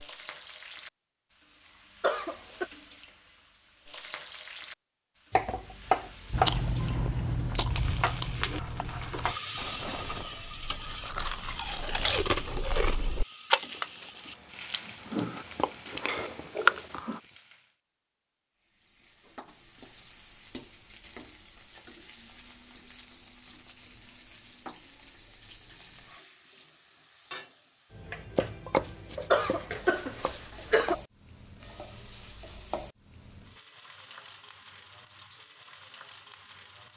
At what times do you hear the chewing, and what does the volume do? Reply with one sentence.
The chewing can be heard from 6.3 to 17.2 s, getting quieter then louder.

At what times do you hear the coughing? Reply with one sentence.
The coughing can be heard from 2.0 to 2.6 s and from 29.3 to 30.9 s.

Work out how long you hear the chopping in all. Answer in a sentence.
You can hear the chopping for 5 seconds altogether.